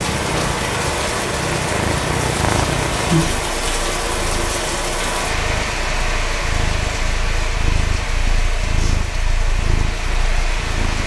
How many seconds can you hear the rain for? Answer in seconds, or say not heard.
11 s.